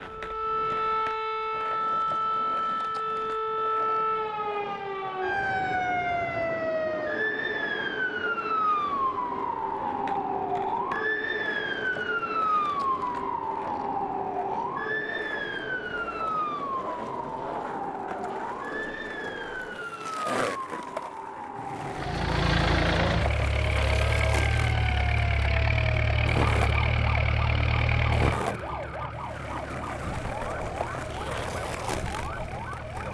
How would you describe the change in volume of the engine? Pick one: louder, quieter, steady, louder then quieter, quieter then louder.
quieter.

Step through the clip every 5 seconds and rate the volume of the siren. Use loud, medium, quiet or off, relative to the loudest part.
loud, loud, loud, medium, medium, medium, medium.